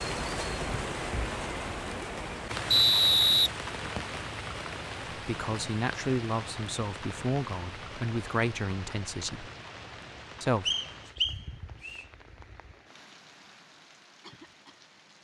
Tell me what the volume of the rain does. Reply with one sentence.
The loudness of the rain goes down.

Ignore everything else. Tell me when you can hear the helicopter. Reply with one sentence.
You can't hear the helicopter here.